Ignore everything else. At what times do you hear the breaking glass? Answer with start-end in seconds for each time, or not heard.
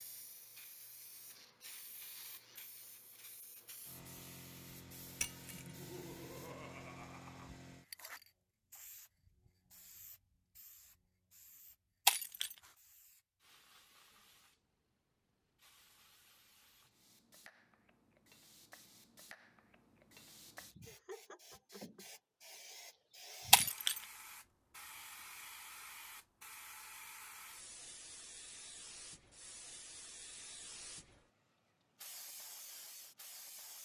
5.2-5.8, 12.1-12.6, 23.5-24.0.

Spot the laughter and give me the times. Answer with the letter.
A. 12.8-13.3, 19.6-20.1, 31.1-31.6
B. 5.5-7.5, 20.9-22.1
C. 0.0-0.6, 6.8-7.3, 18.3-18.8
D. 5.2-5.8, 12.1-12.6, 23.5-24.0
B.